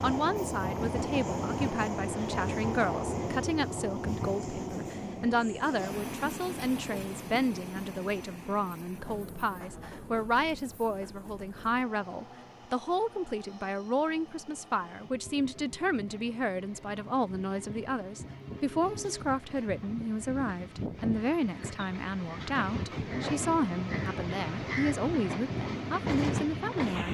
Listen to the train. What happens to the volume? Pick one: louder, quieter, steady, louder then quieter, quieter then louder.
quieter then louder.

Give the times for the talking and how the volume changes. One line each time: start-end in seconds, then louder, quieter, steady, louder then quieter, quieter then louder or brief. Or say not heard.
0.0-27.0 steady.